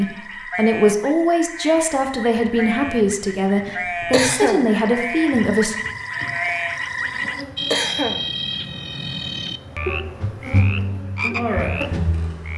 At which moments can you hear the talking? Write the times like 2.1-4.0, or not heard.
0.0-5.8.